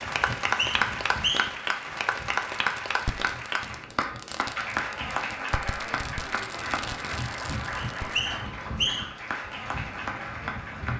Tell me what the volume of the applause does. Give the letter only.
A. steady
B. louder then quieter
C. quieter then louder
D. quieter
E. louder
D.